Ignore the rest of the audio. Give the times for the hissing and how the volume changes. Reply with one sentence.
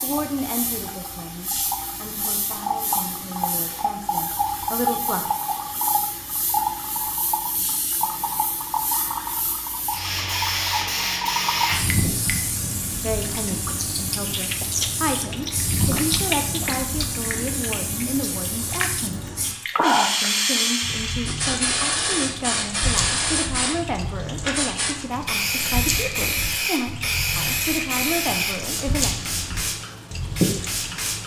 The hissing can be heard from 0.0 to 31.2 s, getting louder.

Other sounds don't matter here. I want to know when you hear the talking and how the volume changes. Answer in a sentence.
You can hear the talking from 0.0 to 5.2 s, getting quieter then louder; and from 13.0 to 29.1 s, at a steady volume.